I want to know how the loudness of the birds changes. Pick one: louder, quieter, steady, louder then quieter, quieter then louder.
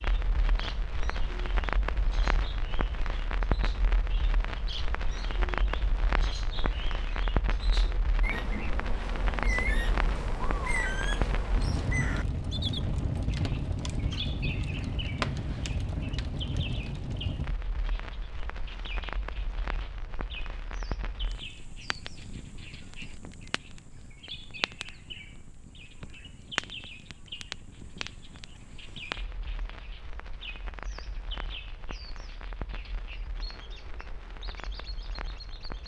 louder then quieter.